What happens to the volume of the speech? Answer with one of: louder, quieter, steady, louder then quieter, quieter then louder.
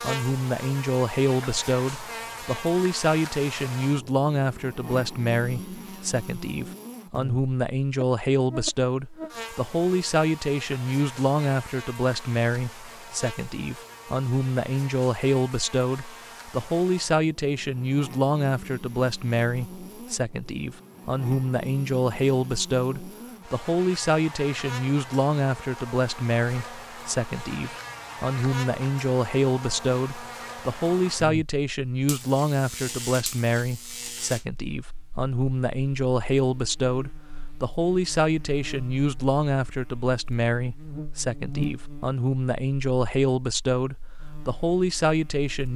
steady.